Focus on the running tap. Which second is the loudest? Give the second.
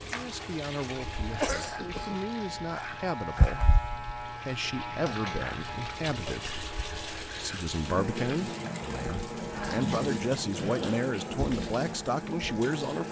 10 s.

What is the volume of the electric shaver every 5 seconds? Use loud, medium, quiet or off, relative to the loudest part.
loud, medium, medium.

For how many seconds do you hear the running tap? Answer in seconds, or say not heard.
13 s.